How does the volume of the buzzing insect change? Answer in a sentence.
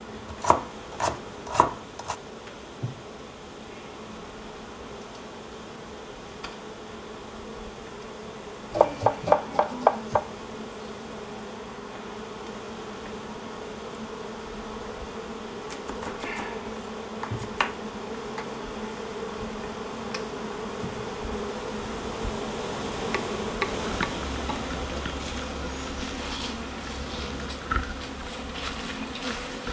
The volume of the buzzing insect goes up.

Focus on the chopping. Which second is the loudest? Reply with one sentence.
The volume of the chopping peaks at 9 seconds.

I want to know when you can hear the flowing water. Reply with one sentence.
The flowing water can be heard from 0.0 to 29.5 s.